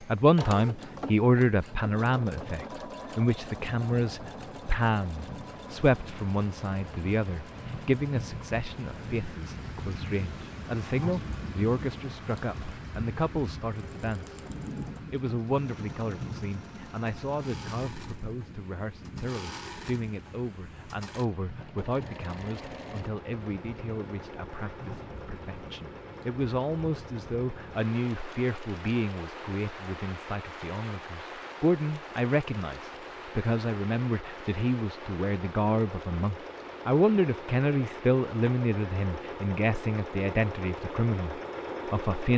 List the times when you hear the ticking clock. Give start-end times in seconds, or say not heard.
not heard.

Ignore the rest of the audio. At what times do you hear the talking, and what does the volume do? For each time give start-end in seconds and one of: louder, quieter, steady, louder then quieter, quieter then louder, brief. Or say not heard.
0.0-14.4 quieter
15.1-42.3 louder.